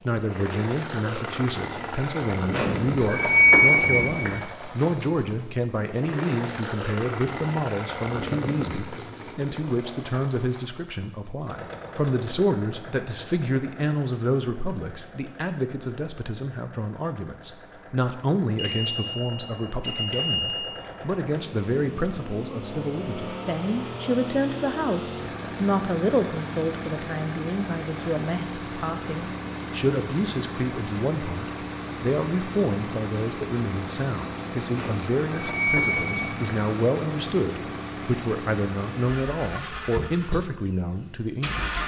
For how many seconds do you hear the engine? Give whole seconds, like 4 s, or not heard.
42 s.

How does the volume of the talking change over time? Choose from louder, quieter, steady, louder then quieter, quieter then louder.
steady.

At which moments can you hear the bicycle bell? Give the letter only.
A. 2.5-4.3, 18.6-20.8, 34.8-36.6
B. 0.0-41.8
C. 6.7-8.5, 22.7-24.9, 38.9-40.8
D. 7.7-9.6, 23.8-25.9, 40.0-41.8
A.